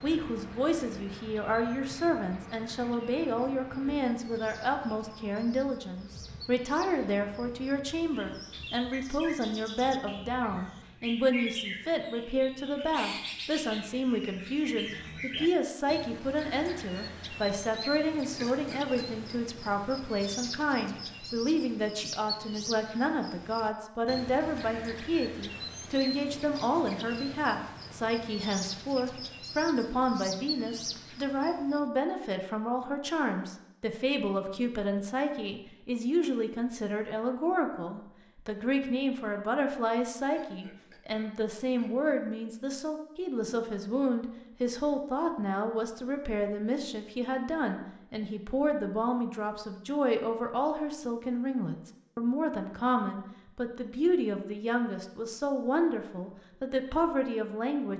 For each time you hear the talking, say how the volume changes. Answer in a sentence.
The talking can be heard from 0.0 to 57.9 s, at a steady volume.